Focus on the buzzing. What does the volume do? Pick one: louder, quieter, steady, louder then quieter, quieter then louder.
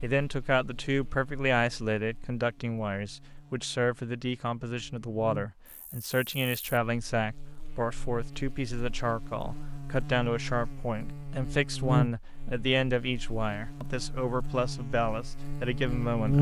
louder then quieter.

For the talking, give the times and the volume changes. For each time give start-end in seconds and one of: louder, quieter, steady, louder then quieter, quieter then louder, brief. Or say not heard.
0.0-16.3 steady.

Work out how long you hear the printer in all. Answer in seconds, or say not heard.
not heard.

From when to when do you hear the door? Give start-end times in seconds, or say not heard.
not heard.